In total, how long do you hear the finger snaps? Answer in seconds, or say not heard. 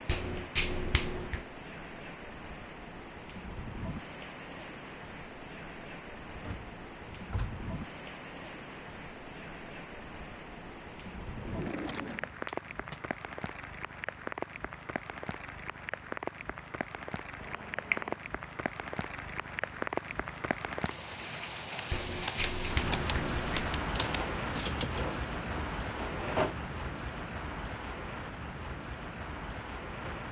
4 s.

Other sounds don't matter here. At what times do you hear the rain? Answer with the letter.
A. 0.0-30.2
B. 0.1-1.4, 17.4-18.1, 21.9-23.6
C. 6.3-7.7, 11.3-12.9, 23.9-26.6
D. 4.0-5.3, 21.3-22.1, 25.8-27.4
A.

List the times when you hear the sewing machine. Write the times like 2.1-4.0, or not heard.
not heard.